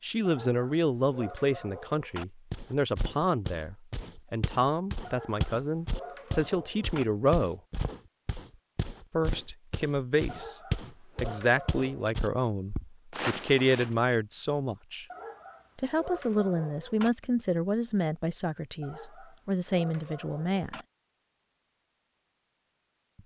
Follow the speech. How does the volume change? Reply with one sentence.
The volume of the speech stays about the same.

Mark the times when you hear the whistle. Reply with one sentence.
You can't hear the whistle here.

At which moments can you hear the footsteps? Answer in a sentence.
You can hear the footsteps from 2.5 to 14.0 s.